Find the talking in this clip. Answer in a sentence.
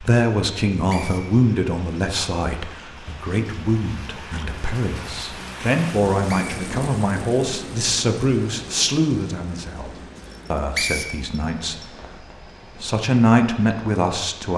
The talking can be heard from 0.0 to 9.9 s, from 10.5 to 11.8 s and from 12.8 to 14.5 s.